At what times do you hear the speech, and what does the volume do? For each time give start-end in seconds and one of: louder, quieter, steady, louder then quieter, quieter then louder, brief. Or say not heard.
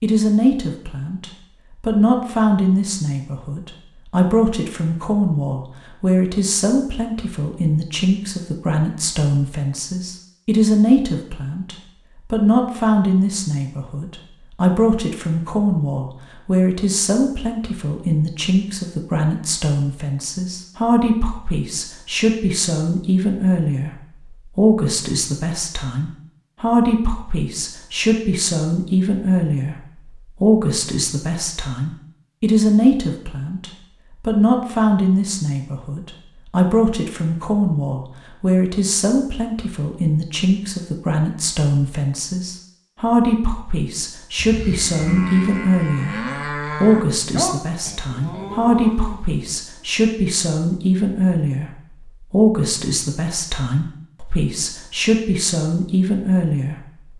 0.0-57.1 steady.